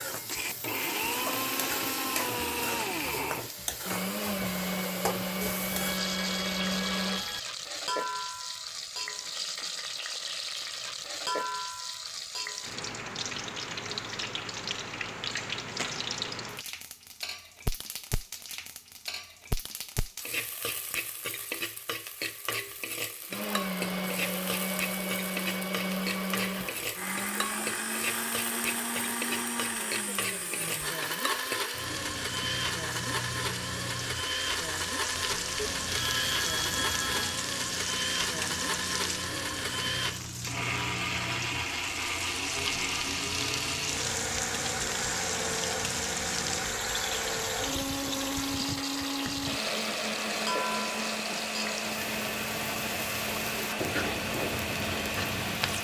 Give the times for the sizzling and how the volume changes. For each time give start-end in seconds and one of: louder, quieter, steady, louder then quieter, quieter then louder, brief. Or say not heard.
0.0-55.8 steady.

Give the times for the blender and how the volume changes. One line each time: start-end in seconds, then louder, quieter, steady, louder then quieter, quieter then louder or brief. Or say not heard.
0.2-7.2 steady
23.3-55.8 steady.